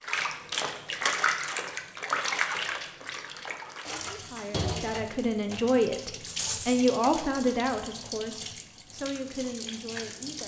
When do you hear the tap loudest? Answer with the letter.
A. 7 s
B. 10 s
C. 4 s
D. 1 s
D.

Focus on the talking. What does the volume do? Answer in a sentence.
The volume of the talking goes up, then down.